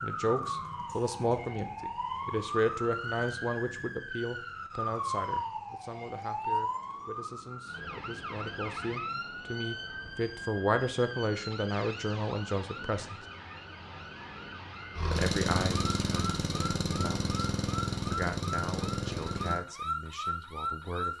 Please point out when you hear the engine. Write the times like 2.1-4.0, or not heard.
14.9-19.6.